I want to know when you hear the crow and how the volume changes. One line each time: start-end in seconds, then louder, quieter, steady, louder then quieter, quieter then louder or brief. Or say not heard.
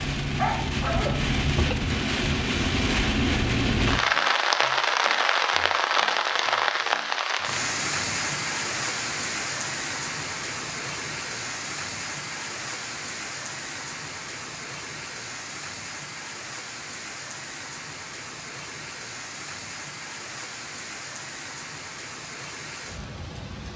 not heard.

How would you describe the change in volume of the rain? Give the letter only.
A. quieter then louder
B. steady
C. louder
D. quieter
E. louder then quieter
D.